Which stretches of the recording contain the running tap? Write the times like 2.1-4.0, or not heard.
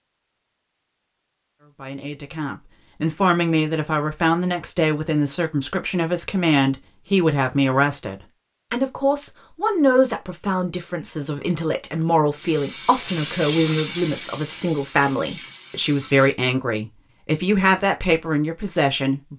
12.3-16.4.